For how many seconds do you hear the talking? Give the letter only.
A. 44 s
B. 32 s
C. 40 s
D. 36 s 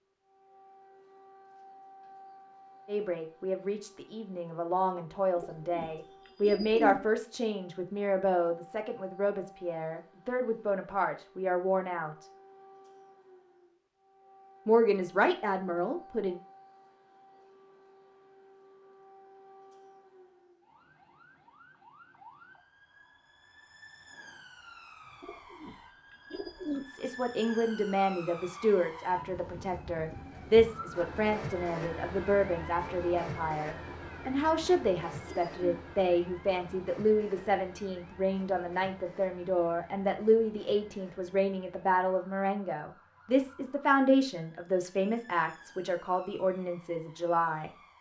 B.